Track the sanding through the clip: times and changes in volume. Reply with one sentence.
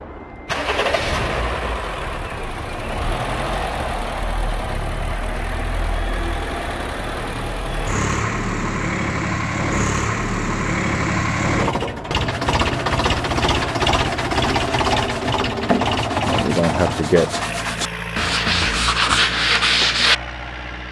You can hear the sanding from 12.3 to 20.1 s, getting louder.